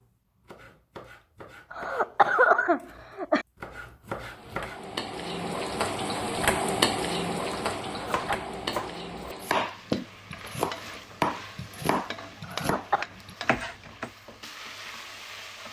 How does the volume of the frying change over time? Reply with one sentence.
The loudness of the frying goes down.